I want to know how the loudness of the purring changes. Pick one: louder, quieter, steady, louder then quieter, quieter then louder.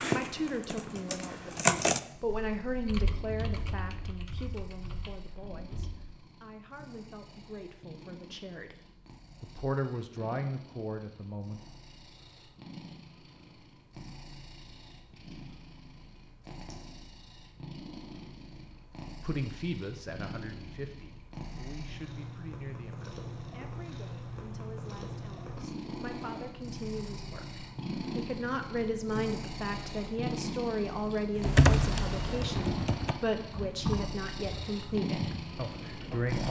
louder.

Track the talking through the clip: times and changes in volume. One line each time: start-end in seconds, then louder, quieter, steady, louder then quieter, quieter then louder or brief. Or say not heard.
0.0-11.6 quieter then louder
19.2-36.4 quieter then louder.